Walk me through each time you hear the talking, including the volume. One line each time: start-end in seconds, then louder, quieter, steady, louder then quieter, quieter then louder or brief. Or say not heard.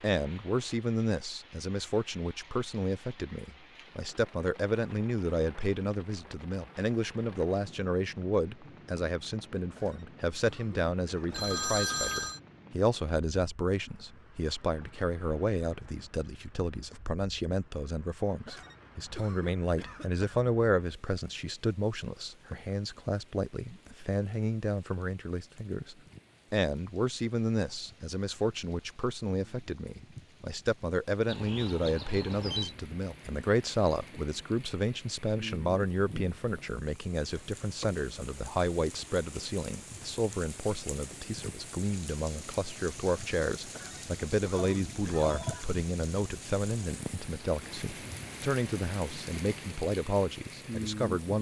0.0-51.3 steady.